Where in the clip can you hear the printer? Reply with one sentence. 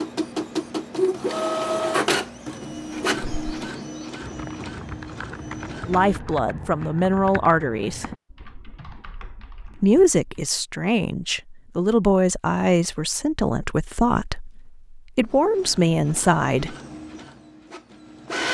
You can hear the printer from 0.0 to 6.2 s and from 15.2 to 18.4 s.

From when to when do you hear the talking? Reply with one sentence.
The talking can be heard from 5.8 to 8.1 s and from 9.8 to 16.8 s.